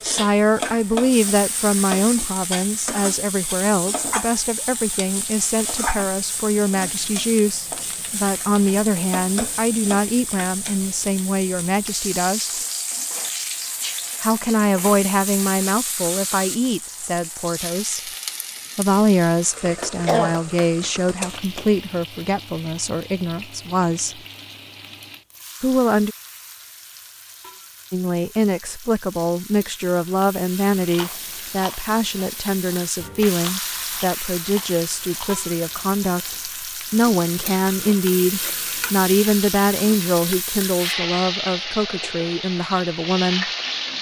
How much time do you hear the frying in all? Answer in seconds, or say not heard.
44 s.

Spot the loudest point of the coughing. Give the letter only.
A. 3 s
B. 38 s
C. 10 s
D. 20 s
D.